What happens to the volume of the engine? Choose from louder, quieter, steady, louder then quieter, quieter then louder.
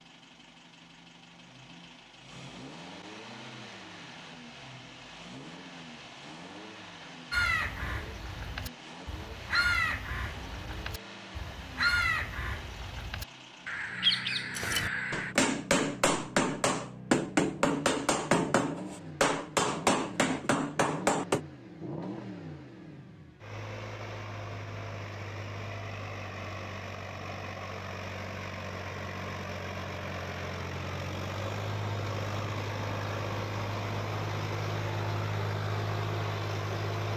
louder.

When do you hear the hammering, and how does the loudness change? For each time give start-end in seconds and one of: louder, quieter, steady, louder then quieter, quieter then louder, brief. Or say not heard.
14.6-21.4 steady.